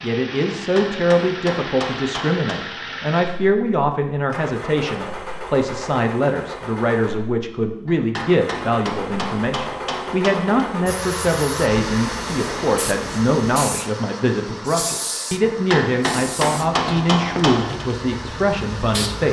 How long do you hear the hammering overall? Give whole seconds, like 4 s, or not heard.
7 s.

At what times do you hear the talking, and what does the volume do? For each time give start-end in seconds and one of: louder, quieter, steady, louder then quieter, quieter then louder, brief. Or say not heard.
0.0-19.2 steady.